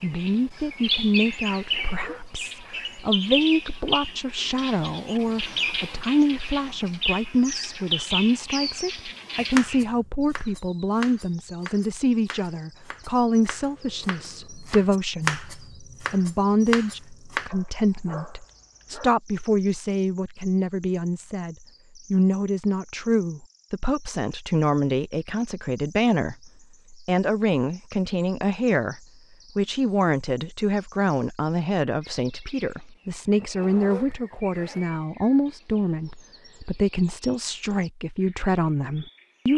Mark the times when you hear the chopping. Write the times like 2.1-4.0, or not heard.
9.4-17.5.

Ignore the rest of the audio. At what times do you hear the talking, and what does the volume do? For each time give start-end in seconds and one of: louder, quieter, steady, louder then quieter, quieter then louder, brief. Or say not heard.
0.0-39.5 steady.